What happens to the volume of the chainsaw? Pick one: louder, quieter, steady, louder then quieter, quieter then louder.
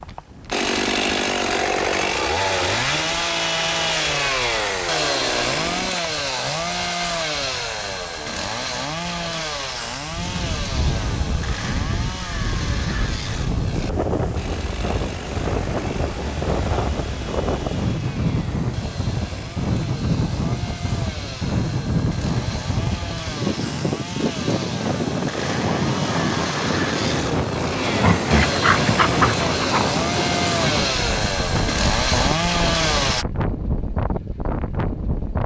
quieter then louder.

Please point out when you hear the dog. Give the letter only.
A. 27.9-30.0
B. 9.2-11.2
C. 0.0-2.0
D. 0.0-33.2
A.